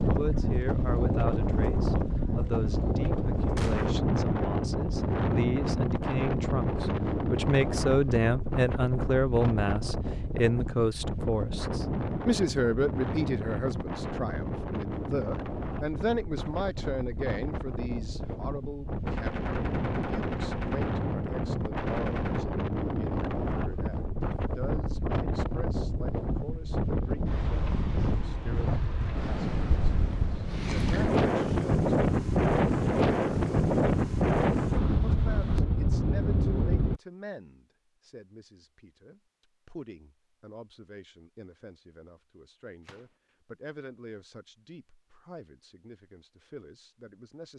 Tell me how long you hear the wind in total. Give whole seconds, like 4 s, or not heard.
37 s.